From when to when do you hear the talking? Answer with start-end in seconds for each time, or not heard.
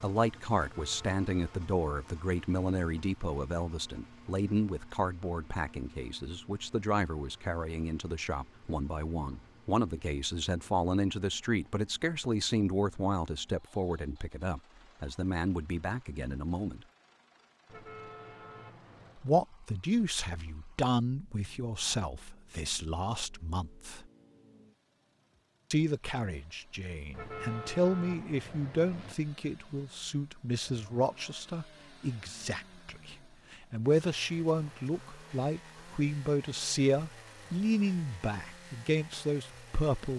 0.0-16.9, 19.1-24.1, 25.7-40.1.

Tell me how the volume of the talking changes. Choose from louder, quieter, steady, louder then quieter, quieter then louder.
steady.